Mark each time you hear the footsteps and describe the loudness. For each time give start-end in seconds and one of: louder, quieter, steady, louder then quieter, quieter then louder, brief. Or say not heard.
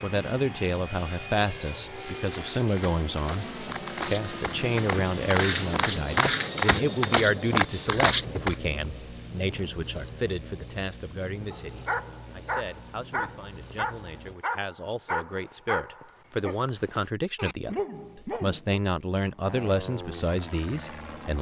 2.3-8.6 louder.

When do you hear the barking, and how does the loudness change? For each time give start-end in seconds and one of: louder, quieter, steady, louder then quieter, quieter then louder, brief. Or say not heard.
11.5-18.8 quieter then louder.